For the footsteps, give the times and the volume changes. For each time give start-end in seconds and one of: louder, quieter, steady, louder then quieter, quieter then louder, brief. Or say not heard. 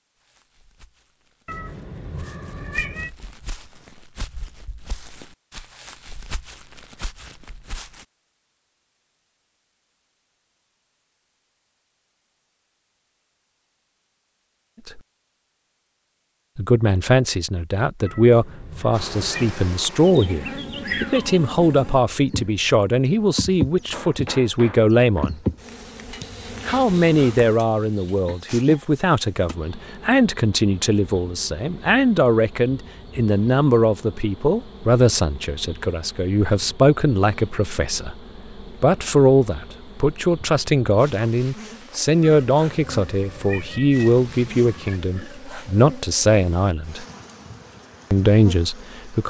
0.1-8.1 louder.